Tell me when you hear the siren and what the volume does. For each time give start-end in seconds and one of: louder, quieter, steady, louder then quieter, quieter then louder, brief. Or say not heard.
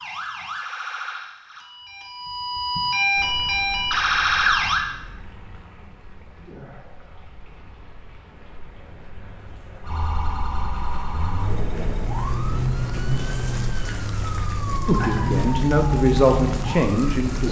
0.0-4.8 quieter then louder
9.8-17.4 louder.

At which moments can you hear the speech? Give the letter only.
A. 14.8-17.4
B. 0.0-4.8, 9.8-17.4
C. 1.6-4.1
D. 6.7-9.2
A.